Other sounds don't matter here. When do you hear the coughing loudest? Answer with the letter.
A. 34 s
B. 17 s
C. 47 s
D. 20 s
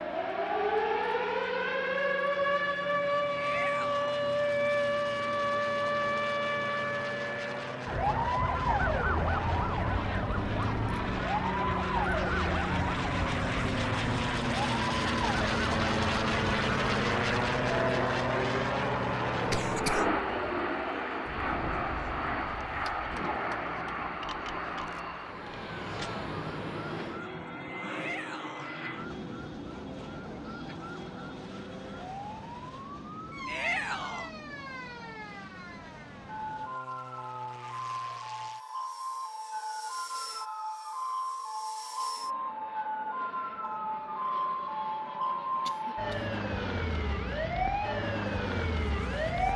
D.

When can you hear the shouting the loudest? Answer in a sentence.
The volume of the shouting peaks at 34 seconds.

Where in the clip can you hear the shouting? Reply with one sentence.
The shouting can be heard from 3.4 to 4.1 s, from 27.9 to 28.7 s and from 33.5 to 34.3 s.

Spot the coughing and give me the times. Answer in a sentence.
The coughing can be heard from 19.4 to 20.1 s and from 45.6 to 46.2 s.